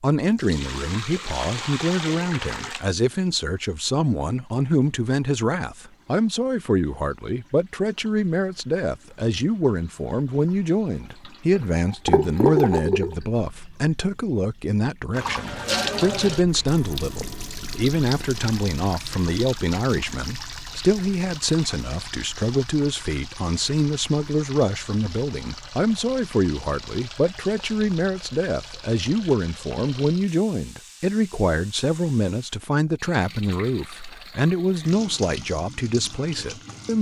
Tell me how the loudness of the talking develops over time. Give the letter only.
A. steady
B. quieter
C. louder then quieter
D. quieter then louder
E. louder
A.